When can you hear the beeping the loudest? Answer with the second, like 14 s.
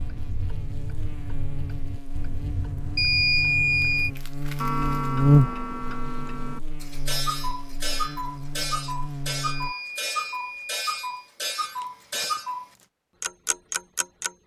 3 s.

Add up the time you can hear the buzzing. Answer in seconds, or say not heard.
10 s.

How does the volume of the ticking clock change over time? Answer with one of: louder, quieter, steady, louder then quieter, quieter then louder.
louder.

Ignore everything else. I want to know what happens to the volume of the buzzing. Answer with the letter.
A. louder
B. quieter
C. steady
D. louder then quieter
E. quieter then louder
D.